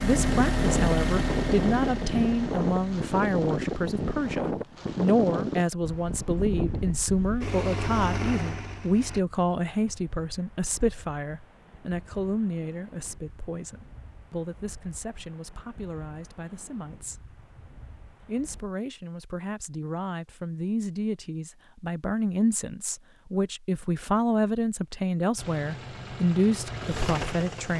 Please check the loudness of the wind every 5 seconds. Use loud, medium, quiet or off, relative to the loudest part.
loud, loud, quiet, quiet, off, off.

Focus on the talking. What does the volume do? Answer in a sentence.
The loudness of the talking goes down, then up.